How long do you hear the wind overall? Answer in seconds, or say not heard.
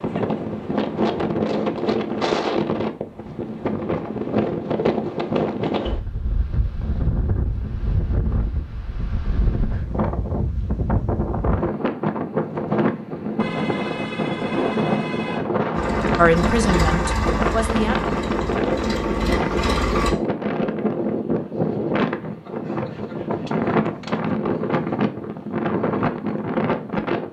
27 s.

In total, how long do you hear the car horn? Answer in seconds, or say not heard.
2 s.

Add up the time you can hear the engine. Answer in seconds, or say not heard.
4 s.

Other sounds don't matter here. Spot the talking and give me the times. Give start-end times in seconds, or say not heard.
16.1-18.1.